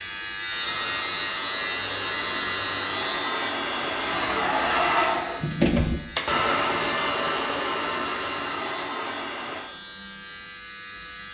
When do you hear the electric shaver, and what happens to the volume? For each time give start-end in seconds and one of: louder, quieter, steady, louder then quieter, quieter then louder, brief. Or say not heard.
0.0-11.2 quieter.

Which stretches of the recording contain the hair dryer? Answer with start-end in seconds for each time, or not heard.
0.0-9.7.